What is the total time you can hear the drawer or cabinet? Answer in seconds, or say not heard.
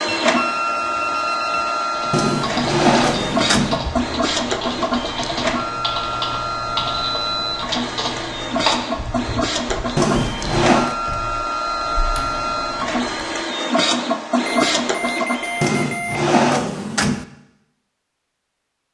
4 s.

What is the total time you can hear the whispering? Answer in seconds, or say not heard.
not heard.